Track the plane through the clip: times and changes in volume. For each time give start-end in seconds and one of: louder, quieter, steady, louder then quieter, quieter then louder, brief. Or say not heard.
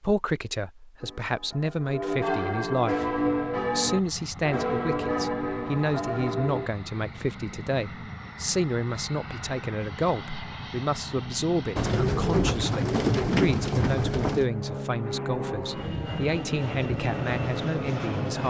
2.9-18.4 louder.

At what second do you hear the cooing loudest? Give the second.
13 s.